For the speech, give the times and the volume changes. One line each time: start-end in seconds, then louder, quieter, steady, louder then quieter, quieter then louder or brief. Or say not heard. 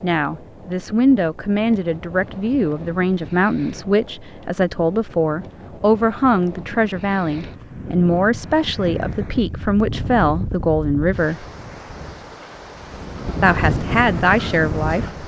0.0-11.4 steady
13.4-15.1 brief.